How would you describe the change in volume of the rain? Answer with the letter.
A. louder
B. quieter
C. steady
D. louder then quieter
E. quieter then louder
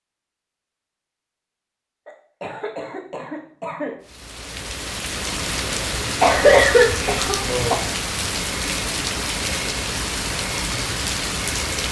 C.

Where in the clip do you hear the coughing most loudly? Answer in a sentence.
The volume of the coughing peaks at 7 seconds.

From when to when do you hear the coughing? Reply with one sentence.
You can hear the coughing from 2.0 to 4.0 s and from 6.2 to 7.8 s.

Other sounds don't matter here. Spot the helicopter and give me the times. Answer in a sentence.
You can't hear the helicopter here.